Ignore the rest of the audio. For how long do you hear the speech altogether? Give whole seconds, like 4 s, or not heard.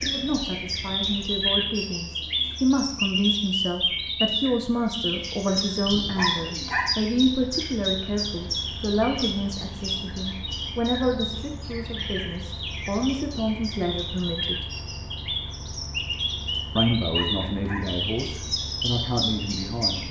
18 s.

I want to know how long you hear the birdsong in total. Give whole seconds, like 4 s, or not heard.
20 s.